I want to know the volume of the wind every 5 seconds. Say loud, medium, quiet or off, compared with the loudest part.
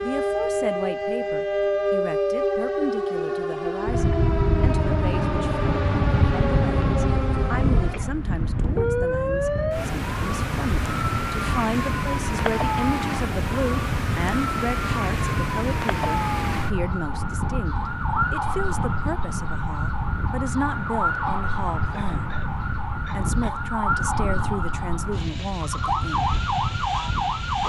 loud, loud, medium, medium, medium, medium.